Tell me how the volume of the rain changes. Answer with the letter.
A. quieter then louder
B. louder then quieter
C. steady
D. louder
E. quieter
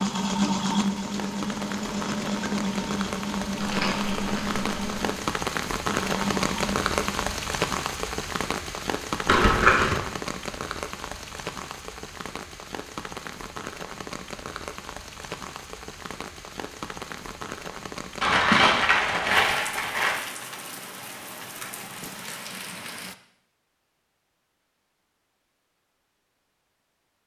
B.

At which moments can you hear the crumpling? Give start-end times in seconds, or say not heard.
3.5-4.8, 9.2-9.9, 18.2-20.2.